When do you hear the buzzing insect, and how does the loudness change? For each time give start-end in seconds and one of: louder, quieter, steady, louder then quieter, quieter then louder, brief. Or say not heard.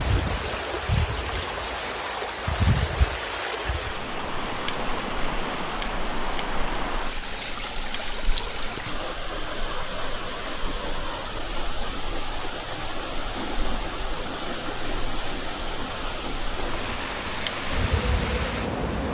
0.0-19.1 quieter then louder.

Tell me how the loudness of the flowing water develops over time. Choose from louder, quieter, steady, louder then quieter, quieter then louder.
steady.